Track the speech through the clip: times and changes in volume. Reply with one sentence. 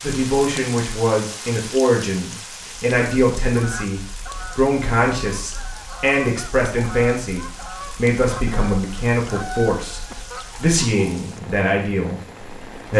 You can hear the speech from 0.0 to 12.9 s, at a steady volume.